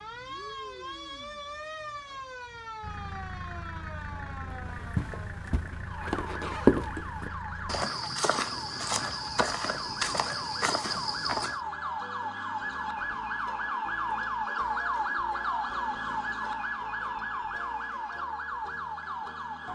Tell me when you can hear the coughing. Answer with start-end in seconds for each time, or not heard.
not heard.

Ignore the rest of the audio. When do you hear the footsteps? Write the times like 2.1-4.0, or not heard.
4.7-11.6.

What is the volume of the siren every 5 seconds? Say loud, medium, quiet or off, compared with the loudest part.
medium, medium, loud, loud.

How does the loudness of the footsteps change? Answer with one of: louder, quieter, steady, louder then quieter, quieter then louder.
louder then quieter.